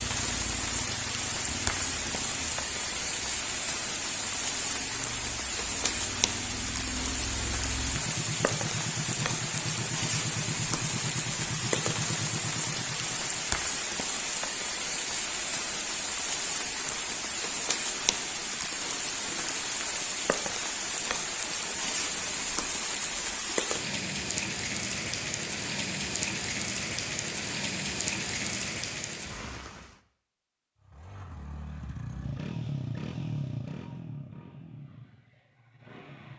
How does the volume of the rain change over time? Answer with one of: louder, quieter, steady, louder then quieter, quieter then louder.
steady.